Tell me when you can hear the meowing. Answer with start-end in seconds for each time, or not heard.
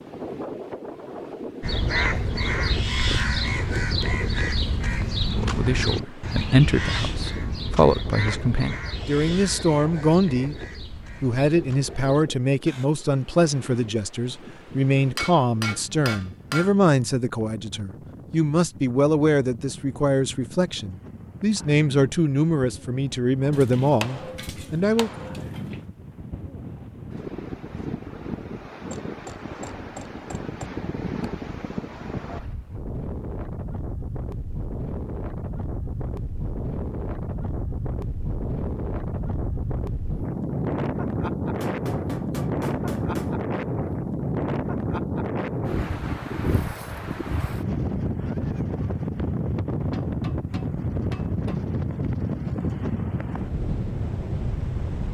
not heard.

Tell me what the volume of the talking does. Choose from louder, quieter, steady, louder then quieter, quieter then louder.
steady.